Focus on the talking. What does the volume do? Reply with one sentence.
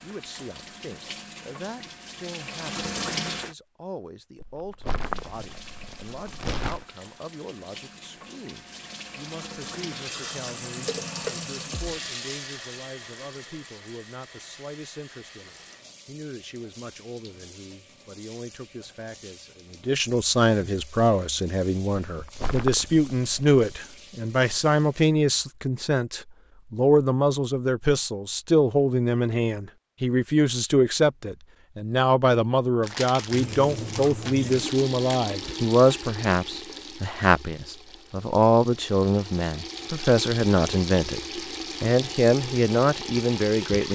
The loudness of the talking goes up.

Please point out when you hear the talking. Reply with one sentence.
You can hear the talking from 0.0 to 43.8 s.